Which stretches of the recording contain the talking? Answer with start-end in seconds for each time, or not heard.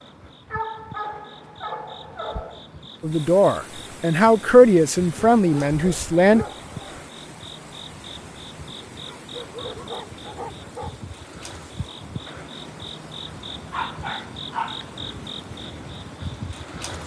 3.0-6.5.